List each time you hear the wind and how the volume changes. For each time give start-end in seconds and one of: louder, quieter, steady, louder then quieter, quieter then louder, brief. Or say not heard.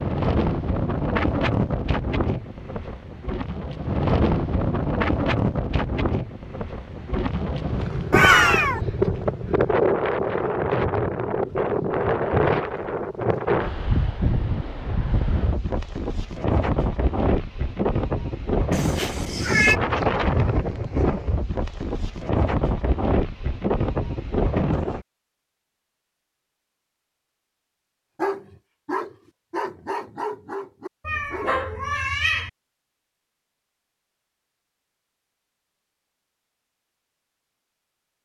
0.0-25.1 steady.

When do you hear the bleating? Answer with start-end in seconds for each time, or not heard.
not heard.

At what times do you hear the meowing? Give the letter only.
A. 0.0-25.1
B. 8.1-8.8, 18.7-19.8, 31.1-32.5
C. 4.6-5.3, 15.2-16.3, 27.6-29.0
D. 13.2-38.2
B.